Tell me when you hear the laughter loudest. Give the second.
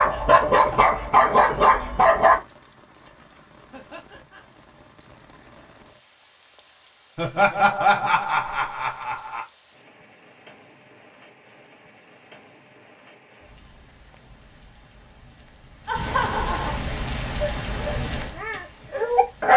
8 s.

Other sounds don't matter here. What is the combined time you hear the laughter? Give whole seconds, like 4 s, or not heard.
4 s.